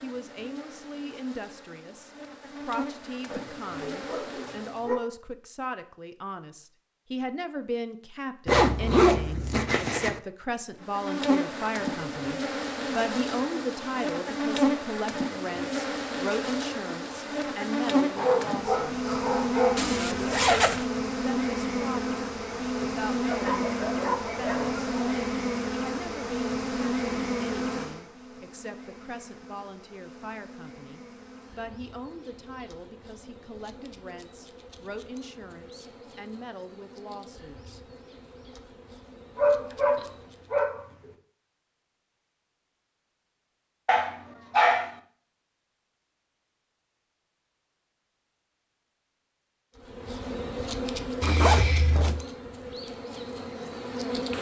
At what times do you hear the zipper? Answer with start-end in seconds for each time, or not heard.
8.4-10.2, 19.8-20.9, 51.2-52.2.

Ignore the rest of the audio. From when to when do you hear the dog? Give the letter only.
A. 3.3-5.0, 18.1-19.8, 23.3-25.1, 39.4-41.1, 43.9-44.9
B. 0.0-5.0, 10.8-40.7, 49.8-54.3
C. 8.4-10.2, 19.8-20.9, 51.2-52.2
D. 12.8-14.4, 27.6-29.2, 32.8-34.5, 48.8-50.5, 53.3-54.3
A.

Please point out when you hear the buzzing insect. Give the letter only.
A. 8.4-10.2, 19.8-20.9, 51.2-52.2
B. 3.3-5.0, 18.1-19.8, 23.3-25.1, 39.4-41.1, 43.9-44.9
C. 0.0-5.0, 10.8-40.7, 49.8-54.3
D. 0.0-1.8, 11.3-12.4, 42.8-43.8
C.